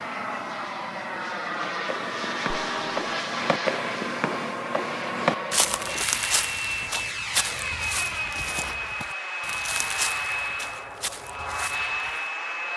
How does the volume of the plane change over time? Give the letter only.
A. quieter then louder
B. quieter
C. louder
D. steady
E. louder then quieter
D.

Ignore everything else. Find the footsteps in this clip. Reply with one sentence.
You can hear the footsteps from 1.6 to 12.2 s.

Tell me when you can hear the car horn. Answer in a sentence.
You can hear the car horn from 2.5 to 3.1 s.